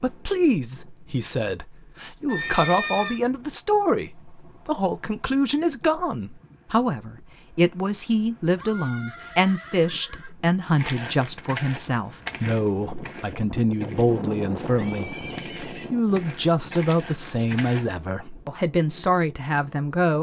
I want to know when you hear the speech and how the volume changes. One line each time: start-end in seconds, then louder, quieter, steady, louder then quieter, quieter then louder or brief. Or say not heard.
0.0-20.1 steady.